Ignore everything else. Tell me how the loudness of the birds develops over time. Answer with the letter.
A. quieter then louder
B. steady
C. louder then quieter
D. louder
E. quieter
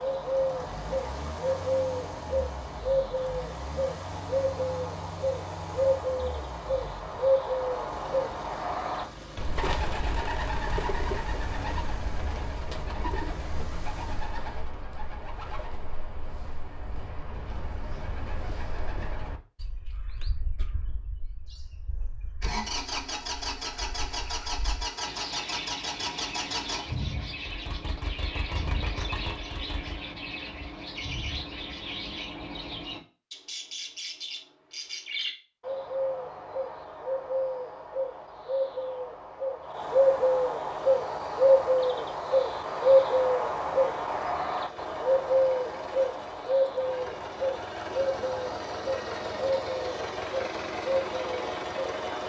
A.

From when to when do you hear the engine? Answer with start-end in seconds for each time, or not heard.
0.0-14.3, 22.4-30.1, 40.8-52.2.